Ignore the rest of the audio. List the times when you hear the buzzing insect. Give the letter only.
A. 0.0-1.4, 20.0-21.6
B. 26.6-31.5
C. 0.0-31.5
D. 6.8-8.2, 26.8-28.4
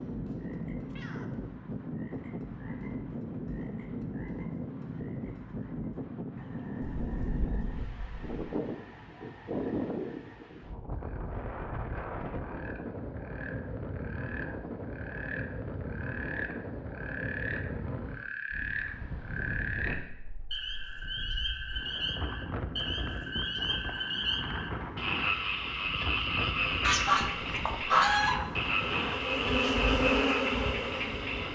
B.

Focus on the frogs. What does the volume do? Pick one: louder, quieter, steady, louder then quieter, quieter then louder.
louder.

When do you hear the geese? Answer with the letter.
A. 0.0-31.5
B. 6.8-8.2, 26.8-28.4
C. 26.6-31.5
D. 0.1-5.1
B.